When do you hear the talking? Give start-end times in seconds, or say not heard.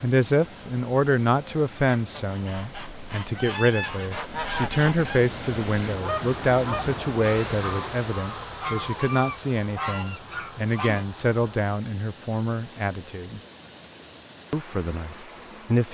0.0-13.4, 14.5-15.8.